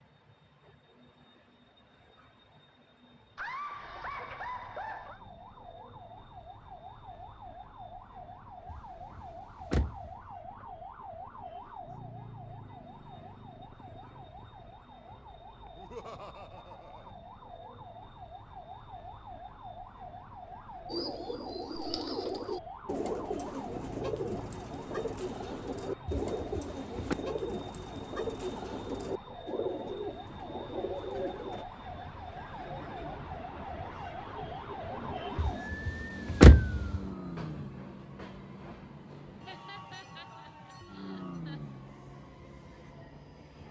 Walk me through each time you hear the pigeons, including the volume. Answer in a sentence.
The pigeons can be heard from 20.9 to 31.6 s, at a steady volume.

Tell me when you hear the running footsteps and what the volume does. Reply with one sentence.
The running footsteps can't be heard in this clip.